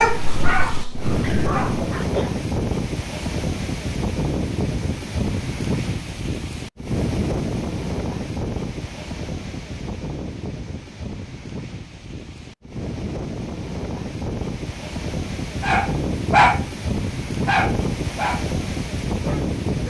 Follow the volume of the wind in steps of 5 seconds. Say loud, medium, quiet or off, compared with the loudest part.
loud, loud, medium, loud.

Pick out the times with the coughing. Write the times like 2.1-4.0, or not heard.
1.2-2.3.